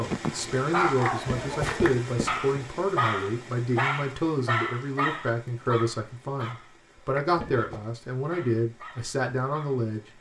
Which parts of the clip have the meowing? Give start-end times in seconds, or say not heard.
1.1-2.5, 7.2-7.8.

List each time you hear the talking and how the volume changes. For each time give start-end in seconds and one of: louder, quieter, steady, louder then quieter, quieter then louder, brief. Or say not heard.
0.0-10.1 steady.